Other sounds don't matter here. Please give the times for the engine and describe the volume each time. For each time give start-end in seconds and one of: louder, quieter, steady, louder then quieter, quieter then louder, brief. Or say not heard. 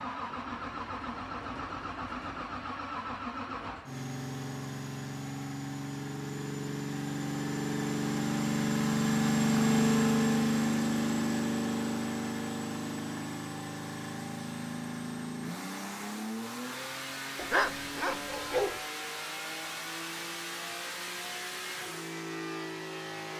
0.0-23.3 louder then quieter.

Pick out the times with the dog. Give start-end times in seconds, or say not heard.
17.4-18.8.